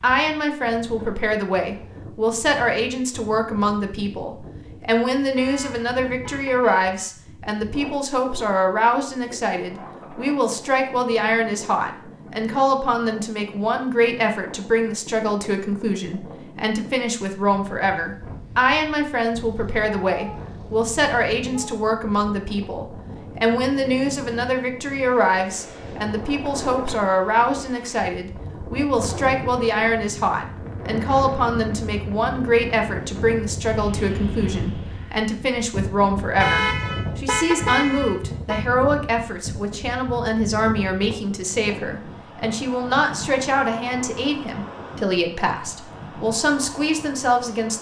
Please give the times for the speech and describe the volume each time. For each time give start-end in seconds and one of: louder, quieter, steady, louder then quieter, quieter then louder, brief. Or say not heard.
0.0-47.7 steady.